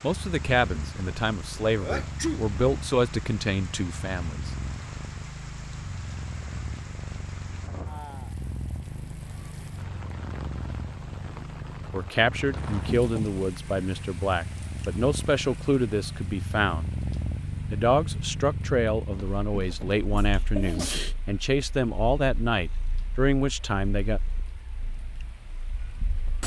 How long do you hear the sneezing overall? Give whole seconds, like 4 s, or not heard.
4 s.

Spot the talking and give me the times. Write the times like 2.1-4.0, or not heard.
0.0-4.5, 11.9-16.9, 17.7-24.2.